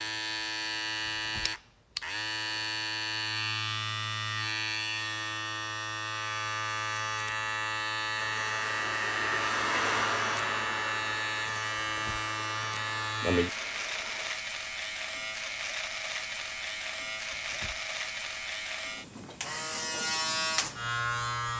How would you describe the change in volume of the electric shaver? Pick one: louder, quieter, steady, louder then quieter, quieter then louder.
steady.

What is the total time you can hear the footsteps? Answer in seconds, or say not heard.
not heard.